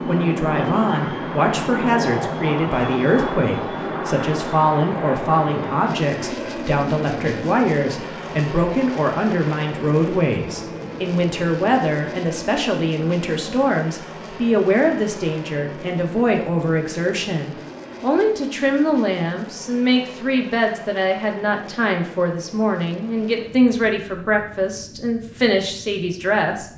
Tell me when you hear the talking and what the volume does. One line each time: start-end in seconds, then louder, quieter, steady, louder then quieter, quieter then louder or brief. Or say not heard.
0.0-26.7 steady.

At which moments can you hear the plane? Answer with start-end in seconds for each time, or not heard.
0.0-26.7.